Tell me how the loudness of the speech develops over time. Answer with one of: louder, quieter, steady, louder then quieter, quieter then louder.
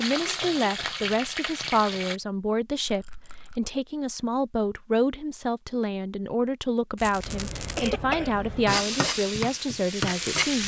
steady.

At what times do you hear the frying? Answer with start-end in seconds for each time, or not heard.
0.0-2.2, 8.7-10.6.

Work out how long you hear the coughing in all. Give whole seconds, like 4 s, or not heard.
3 s.